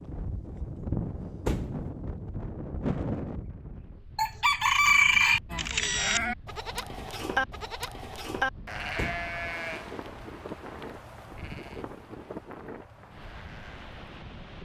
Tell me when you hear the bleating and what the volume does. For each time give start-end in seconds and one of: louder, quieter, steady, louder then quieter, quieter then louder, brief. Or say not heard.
5.5-13.9 quieter.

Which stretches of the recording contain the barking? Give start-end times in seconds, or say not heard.
not heard.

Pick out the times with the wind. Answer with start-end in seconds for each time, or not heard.
0.0-14.6.